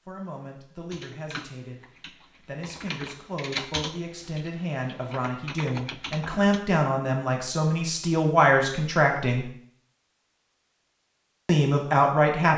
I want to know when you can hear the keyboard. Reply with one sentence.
You can hear the keyboard from 0.9 to 6.6 s.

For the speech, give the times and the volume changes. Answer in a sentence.
You can hear the speech from 0.1 to 9.4 s, getting louder; and briefly from 11.4 to 12.5 s.